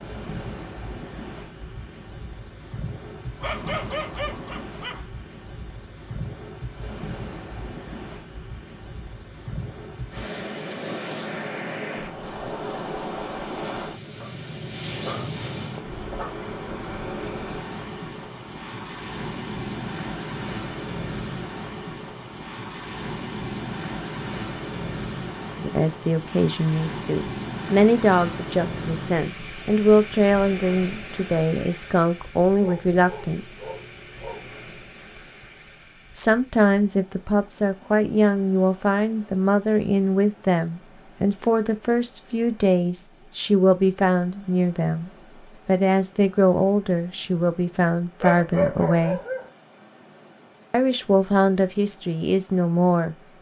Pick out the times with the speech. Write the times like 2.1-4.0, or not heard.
25.6-33.7, 36.1-49.2, 50.7-53.1.